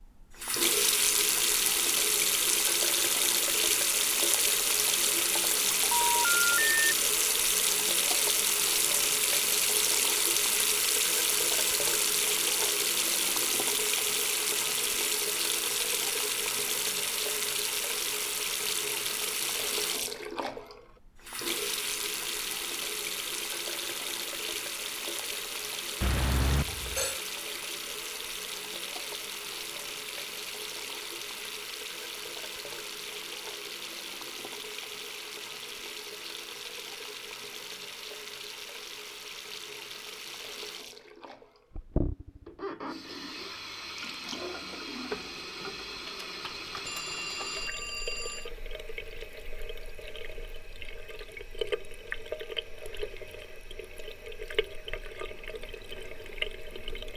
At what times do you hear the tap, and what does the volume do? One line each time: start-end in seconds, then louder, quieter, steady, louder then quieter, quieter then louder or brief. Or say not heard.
0.0-57.1 quieter.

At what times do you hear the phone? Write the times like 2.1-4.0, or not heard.
5.9-6.8, 26.0-27.2, 46.9-48.5.